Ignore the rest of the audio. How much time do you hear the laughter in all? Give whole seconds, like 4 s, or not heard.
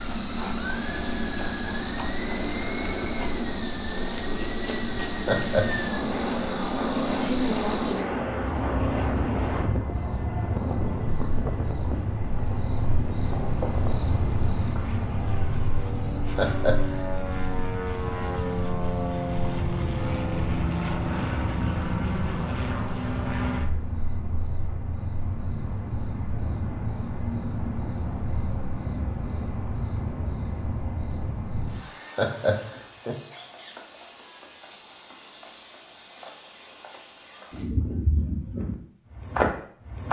2 s.